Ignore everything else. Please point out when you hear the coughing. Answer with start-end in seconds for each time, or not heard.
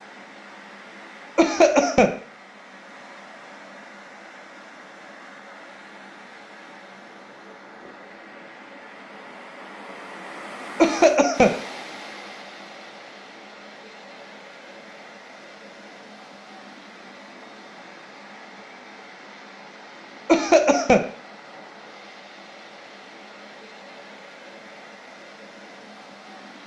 1.4-2.1, 10.8-11.6, 20.2-21.1.